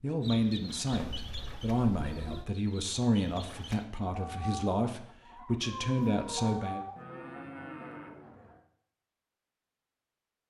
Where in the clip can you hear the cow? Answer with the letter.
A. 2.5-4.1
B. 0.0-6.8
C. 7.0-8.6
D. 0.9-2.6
C.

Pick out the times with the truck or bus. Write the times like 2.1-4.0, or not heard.
not heard.